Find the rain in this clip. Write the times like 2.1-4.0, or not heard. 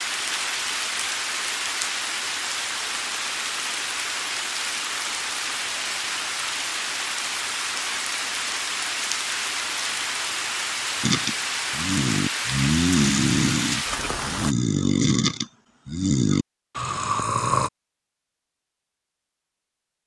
0.0-14.6.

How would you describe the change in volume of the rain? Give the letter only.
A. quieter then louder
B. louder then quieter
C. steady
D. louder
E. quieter
C.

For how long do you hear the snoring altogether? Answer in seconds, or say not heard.
7 s.